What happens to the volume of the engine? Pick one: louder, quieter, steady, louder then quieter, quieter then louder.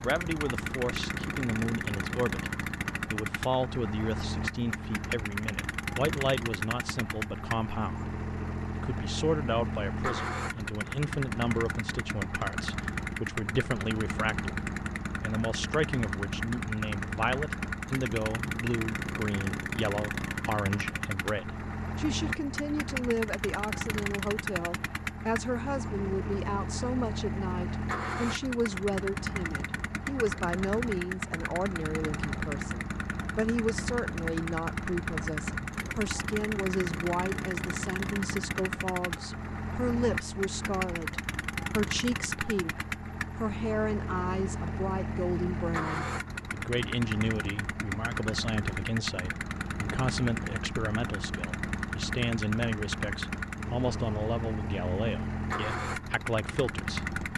steady.